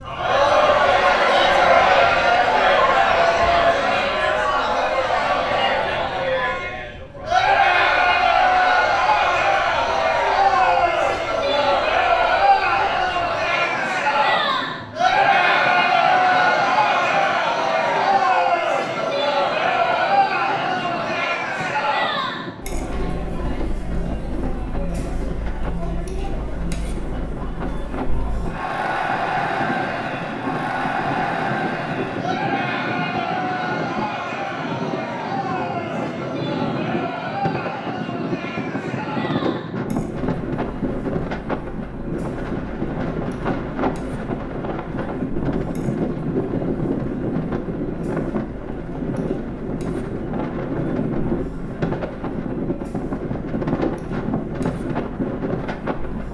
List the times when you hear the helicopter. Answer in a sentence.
The helicopter can't be heard in this clip.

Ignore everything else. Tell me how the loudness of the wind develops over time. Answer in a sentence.
The volume of the wind goes up.